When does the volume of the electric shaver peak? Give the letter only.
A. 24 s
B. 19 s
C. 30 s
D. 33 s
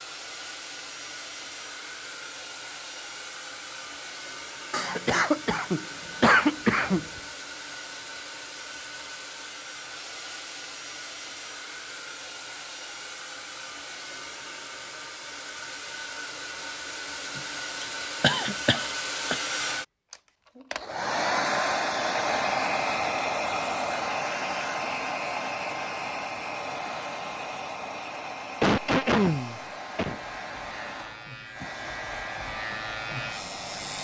D.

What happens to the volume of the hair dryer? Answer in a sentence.
The loudness of the hair dryer goes up, then down.